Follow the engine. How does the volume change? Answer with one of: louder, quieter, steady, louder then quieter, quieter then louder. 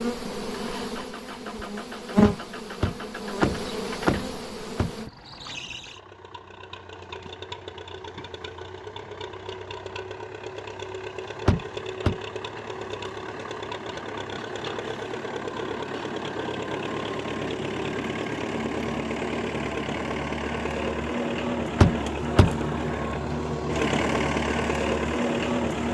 louder.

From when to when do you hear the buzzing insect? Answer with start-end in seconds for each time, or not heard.
0.0-5.1.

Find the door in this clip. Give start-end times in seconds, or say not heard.
2.2-4.9, 11.4-12.2, 21.8-22.6.